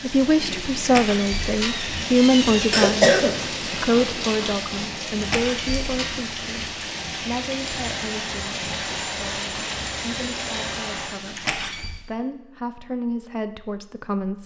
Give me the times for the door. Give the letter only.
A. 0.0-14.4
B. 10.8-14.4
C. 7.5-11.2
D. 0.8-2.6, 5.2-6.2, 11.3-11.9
D.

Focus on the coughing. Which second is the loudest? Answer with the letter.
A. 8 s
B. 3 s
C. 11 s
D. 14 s
B.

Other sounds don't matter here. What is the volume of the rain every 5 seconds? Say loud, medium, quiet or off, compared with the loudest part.
loud, loud, medium.